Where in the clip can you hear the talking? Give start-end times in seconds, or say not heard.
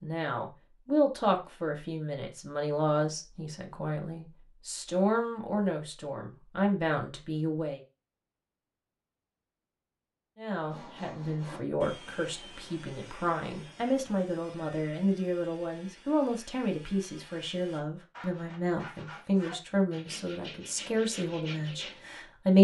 0.0-7.8, 10.3-22.5.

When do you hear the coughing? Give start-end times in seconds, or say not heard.
not heard.